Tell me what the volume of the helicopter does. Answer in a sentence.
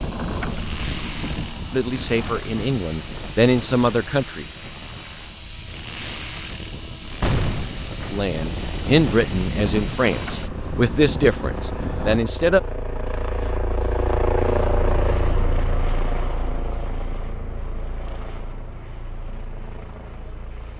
The loudness of the helicopter goes up, then down.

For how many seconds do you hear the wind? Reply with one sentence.
You can hear the wind for 12 seconds altogether.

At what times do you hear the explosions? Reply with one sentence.
You can hear the explosions from 7.2 to 7.8 s.